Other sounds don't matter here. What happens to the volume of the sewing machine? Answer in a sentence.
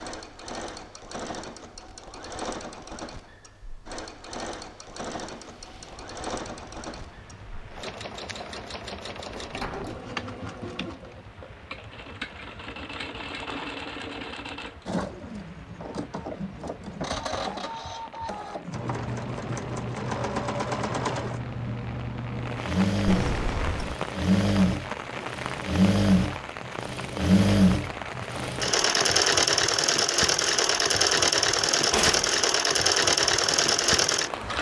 The loudness of the sewing machine goes up.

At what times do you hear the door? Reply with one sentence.
The door can be heard from 9.2 to 10.1 s and from 23.1 to 23.9 s.